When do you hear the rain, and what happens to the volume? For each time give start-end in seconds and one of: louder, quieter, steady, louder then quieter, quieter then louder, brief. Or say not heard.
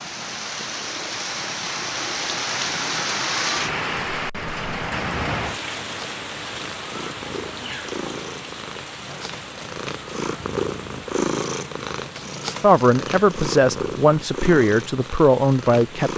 0.0-16.1 quieter.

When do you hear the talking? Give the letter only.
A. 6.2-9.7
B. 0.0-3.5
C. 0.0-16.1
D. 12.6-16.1
D.